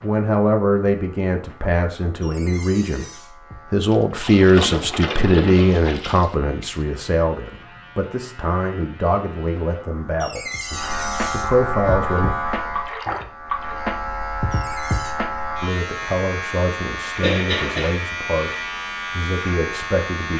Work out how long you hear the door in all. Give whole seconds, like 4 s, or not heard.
3 s.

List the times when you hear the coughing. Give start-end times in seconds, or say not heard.
17.2-17.9.